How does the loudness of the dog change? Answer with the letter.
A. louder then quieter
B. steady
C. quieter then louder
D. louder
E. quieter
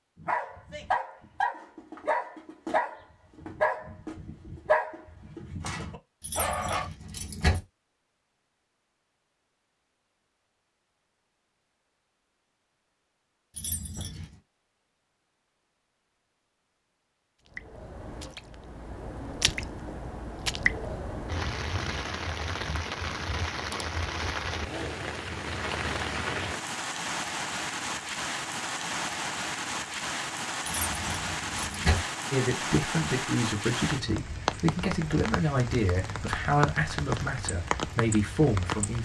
E.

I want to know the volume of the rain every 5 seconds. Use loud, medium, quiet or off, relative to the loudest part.
off, off, off, medium, loud, loud, loud, loud.